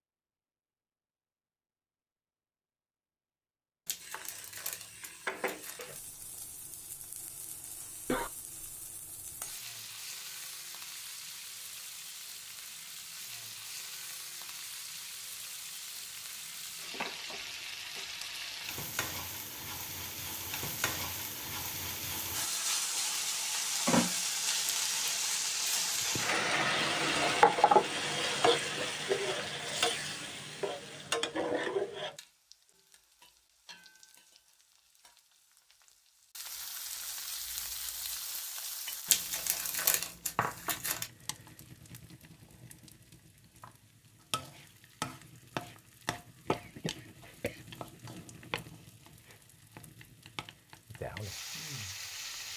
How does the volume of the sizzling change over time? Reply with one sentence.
The loudness of the sizzling goes up, then down.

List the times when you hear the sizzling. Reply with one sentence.
You can hear the sizzling from 4.0 to 52.5 s.